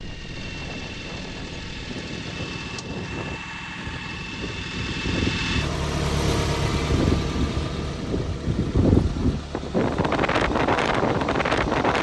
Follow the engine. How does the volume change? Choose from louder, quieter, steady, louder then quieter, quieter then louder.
louder then quieter.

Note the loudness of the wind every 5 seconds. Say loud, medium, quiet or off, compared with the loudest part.
quiet, loud, loud.